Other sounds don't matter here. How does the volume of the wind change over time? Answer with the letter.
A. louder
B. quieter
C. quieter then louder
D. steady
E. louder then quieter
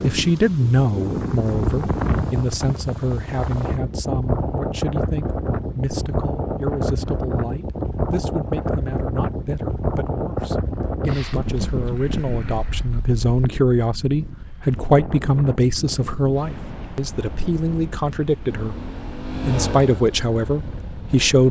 B.